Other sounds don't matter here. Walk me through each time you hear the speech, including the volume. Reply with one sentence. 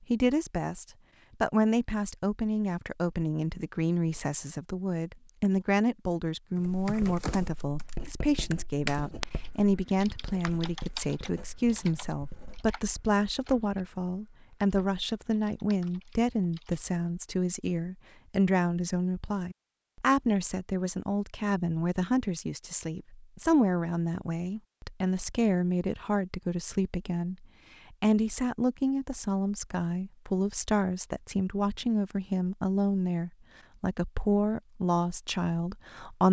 The speech can be heard from 0.1 to 36.2 s, at a steady volume.